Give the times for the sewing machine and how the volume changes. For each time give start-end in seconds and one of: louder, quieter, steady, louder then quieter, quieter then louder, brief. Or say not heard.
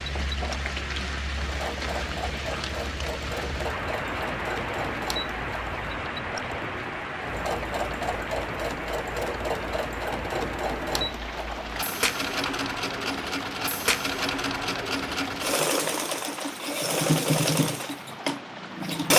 0.0-19.1 louder.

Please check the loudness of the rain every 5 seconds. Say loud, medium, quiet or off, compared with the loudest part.
loud, loud, loud, medium.